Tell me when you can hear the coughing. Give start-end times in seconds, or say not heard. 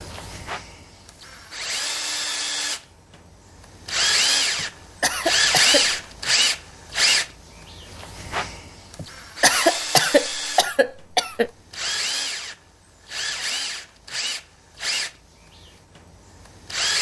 4.5-6.0, 8.9-11.5.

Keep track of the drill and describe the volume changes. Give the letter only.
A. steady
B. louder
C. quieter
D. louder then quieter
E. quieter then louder
D.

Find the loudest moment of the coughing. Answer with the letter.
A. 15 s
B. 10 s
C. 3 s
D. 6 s
B.